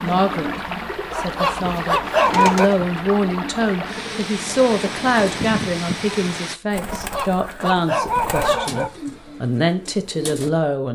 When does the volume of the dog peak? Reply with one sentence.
The volume of the dog peaks at 2 seconds.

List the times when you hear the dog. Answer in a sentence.
You can hear the dog from 1.1 to 2.7 s and from 6.9 to 8.9 s.